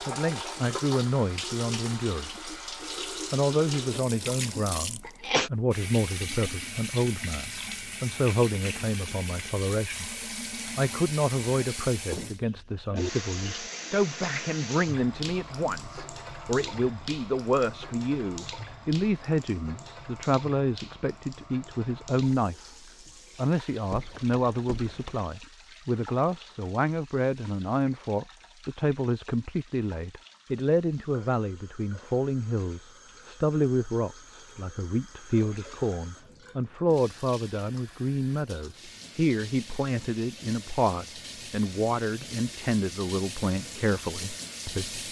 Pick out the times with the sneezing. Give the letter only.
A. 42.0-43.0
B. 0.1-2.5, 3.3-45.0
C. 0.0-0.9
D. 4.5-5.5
D.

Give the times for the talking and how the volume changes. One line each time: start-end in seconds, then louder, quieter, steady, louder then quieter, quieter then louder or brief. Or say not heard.
0.1-2.5 brief
3.3-45.0 steady.